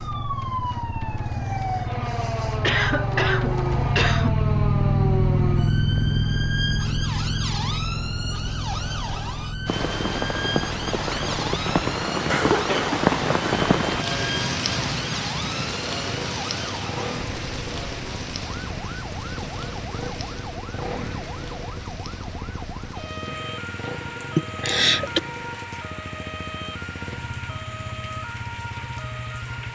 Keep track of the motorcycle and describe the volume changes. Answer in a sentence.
The loudness of the motorcycle goes down.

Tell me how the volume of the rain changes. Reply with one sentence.
The volume of the rain goes down.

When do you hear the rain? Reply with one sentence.
The rain can be heard from 9.7 to 29.7 s.